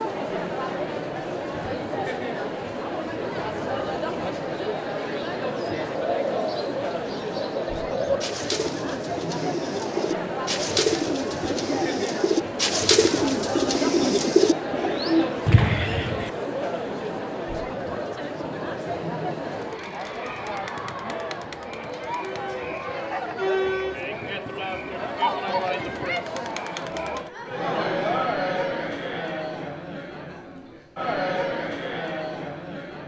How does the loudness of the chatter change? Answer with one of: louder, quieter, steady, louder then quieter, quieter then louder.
steady.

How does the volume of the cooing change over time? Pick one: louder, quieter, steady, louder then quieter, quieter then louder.
louder.